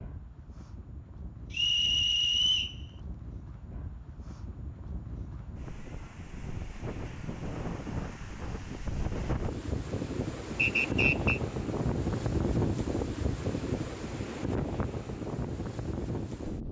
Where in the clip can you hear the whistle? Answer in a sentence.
You can hear the whistle from 1.5 to 2.8 s and from 10.6 to 11.4 s.